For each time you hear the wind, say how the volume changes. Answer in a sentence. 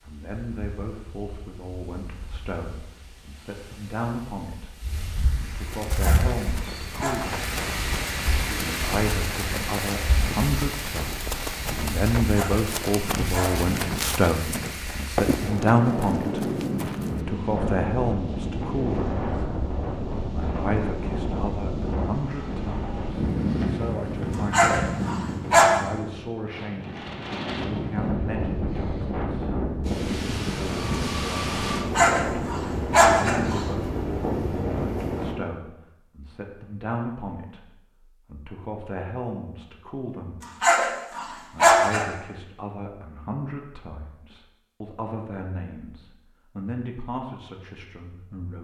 The wind can be heard from 0.0 to 35.4 s, getting louder.